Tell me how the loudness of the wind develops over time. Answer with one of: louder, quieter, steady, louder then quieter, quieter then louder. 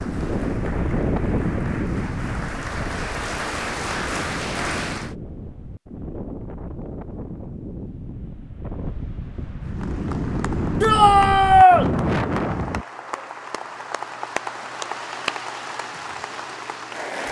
quieter then louder.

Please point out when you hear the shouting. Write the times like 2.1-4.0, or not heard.
10.8-11.8.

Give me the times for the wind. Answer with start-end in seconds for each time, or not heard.
0.0-12.8.